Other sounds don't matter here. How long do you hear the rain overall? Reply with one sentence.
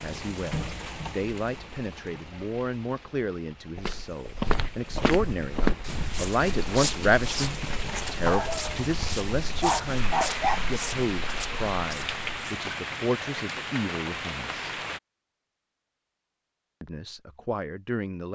You can hear the rain for 15 seconds altogether.